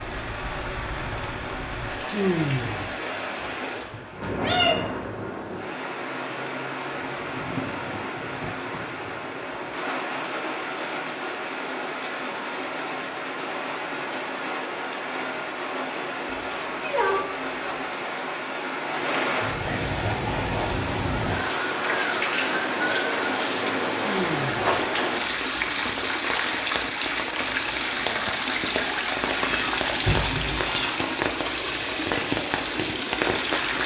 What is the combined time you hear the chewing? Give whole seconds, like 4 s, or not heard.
not heard.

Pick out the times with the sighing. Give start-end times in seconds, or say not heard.
2.1-3.0, 24.0-24.6.